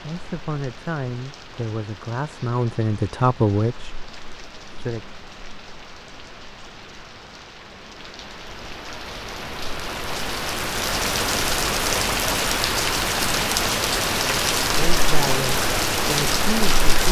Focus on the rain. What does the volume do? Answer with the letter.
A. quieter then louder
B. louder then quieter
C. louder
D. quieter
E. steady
C.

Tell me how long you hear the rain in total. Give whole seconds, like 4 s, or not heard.
17 s.